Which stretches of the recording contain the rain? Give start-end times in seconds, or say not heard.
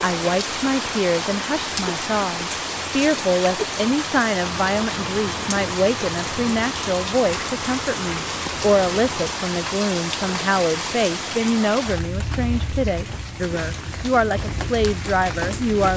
0.0-15.9.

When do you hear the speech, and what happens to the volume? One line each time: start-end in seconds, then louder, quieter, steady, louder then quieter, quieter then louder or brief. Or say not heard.
0.0-15.9 steady.